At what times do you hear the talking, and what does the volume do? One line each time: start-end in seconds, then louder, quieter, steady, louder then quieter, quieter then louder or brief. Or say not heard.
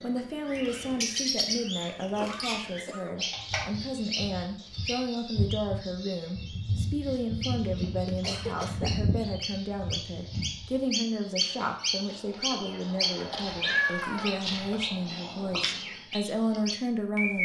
0.0-17.4 steady.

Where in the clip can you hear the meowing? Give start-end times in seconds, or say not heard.
13.2-14.6.